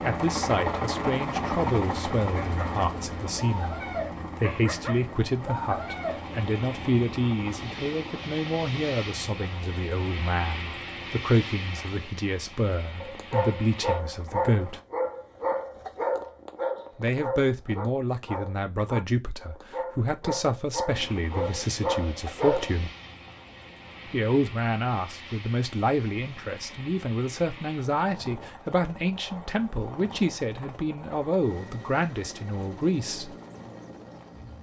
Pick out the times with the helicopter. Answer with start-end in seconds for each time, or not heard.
0.0-14.8, 20.9-34.5.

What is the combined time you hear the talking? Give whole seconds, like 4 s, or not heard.
30 s.